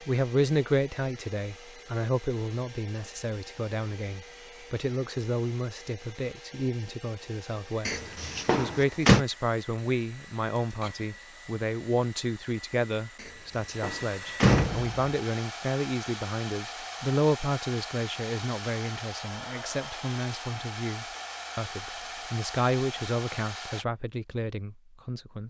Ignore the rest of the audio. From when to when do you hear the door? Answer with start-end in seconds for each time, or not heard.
7.8-9.2, 13.2-15.1.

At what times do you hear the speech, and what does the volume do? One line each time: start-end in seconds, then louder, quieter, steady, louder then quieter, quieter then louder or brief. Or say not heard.
0.1-25.4 steady.